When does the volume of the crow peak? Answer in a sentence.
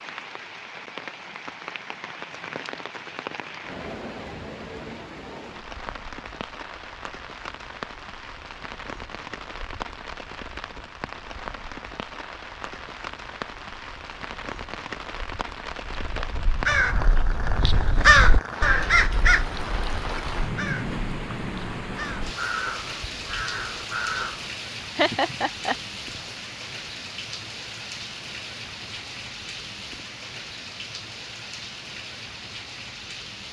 The loudest moment of the crow is at 18 seconds.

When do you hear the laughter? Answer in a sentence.
The laughter can be heard from 24.9 to 25.8 s.